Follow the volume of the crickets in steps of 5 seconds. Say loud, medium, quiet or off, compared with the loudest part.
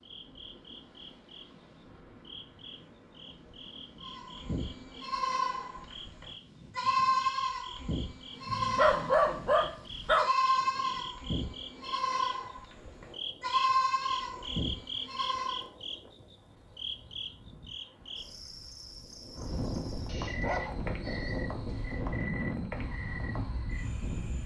medium, medium, loud, loud, loud.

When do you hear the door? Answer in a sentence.
The door can't be heard in this clip.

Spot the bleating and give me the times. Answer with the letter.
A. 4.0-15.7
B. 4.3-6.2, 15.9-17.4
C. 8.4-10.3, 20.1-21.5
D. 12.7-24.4
A.